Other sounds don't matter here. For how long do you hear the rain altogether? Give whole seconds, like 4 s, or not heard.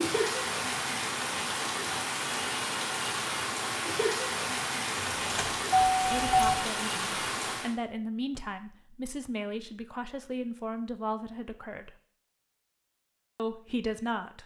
8 s.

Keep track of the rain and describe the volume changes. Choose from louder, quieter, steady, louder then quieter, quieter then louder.
steady.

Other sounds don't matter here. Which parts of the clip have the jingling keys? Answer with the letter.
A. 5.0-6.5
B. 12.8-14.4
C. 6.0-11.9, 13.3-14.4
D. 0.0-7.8
A.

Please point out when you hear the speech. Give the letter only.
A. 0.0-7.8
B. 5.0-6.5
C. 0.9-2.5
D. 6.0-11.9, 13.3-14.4
D.